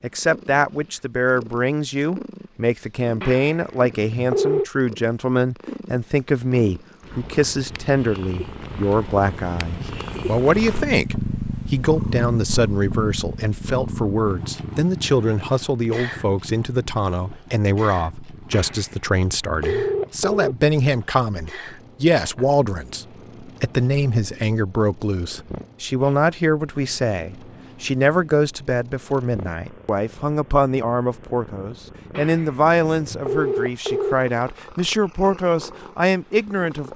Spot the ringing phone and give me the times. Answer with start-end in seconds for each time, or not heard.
3.2-4.7, 18.5-20.6, 32.1-34.1.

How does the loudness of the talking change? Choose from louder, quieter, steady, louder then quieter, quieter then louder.
steady.